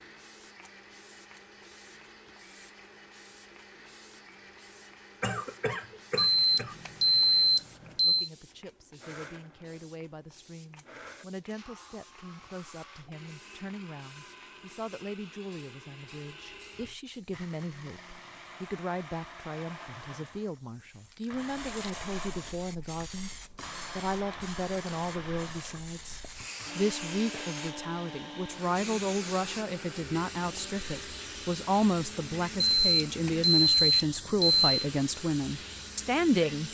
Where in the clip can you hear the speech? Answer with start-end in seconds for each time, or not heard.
8.0-23.3, 23.9-36.7.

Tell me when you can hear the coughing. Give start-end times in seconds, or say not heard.
5.2-6.8.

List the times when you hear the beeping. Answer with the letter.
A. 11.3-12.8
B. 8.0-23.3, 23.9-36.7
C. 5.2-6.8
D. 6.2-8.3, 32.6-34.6
D.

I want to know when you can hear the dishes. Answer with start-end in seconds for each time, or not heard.
not heard.